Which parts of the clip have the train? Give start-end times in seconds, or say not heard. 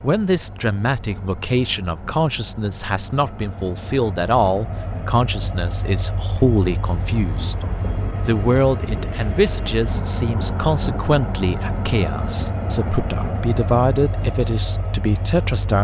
0.0-15.7.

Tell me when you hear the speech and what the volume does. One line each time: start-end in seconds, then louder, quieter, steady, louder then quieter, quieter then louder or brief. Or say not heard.
0.0-15.7 steady.